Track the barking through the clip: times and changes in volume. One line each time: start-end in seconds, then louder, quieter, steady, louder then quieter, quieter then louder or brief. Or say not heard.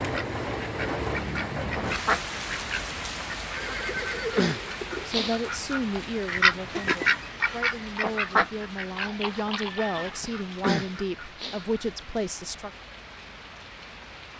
not heard.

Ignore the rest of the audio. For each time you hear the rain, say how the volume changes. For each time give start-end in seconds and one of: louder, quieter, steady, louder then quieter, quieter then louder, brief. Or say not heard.
0.0-14.3 quieter.